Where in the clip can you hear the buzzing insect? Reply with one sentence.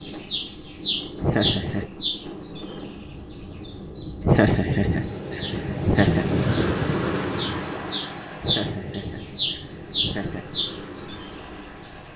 You can't hear the buzzing insect here.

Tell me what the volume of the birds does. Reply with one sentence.
The loudness of the birds goes down, then up.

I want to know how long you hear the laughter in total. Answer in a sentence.
You can hear the laughter for 5 seconds altogether.